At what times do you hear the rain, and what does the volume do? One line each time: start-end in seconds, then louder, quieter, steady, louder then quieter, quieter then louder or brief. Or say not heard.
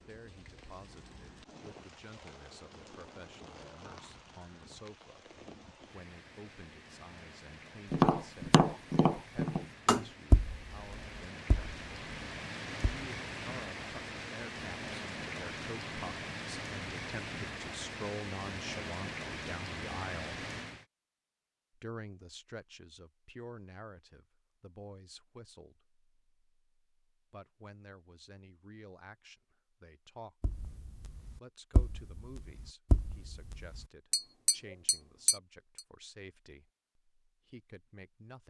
0.0-20.9 louder.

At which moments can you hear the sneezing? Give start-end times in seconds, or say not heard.
not heard.